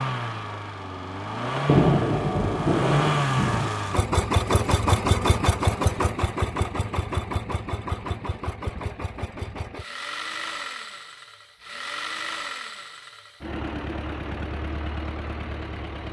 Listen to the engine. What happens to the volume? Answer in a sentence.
The volume of the engine goes down.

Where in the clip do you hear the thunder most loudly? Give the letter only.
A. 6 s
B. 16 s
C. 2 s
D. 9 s
C.